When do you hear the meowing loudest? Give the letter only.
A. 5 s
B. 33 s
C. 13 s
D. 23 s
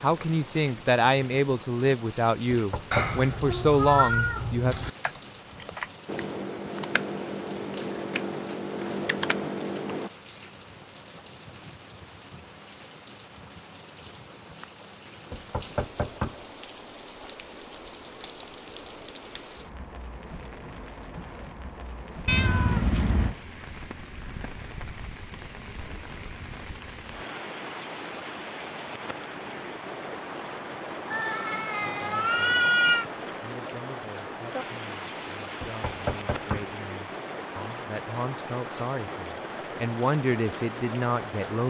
B.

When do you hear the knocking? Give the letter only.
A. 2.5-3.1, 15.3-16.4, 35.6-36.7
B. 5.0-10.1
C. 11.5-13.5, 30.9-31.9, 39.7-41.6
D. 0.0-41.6
A.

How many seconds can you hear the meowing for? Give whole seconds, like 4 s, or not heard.
5 s.